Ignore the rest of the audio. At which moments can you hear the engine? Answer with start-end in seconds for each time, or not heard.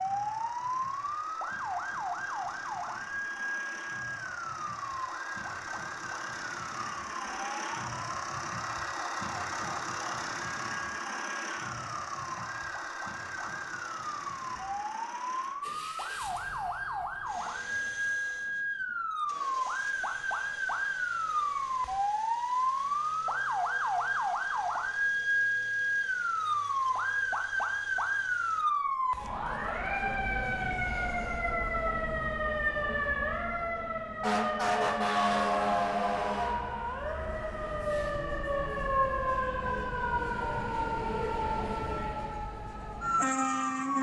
0.0-28.6.